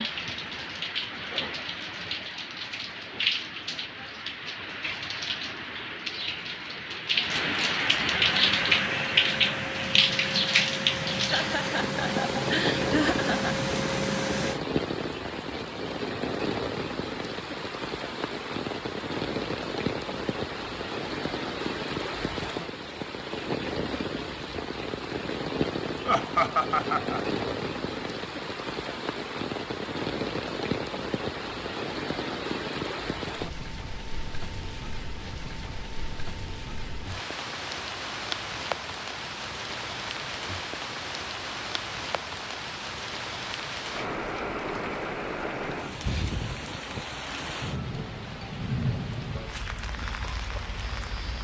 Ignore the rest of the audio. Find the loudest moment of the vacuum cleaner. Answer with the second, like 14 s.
14 s.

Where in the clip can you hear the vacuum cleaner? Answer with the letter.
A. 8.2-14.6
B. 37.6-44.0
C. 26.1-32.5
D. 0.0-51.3
A.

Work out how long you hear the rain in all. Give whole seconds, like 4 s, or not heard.
51 s.